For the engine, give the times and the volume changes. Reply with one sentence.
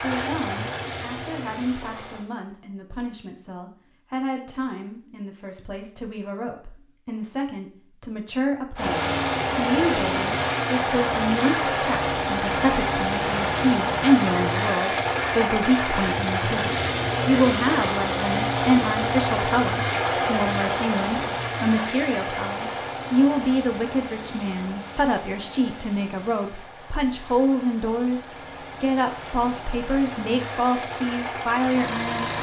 You can hear the engine briefly from 0.0 to 2.3 s; and from 8.8 to 32.3 s, getting quieter.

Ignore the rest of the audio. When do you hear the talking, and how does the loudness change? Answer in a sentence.
You can hear the talking from 0.0 to 32.3 s, getting louder.